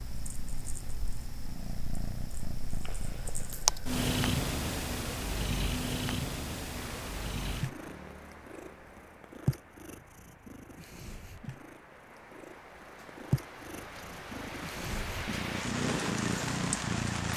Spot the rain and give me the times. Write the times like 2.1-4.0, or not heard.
6.7-17.3.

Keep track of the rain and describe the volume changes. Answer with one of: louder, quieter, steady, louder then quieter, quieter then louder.
quieter then louder.